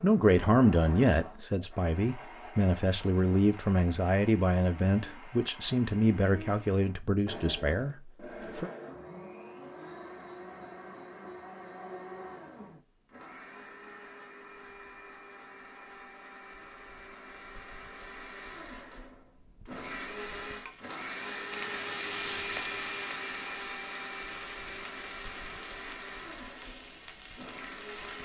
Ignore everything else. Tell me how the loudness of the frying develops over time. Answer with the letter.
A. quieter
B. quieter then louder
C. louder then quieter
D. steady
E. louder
A.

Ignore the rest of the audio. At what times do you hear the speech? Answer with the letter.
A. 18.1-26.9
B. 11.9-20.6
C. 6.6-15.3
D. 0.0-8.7
D.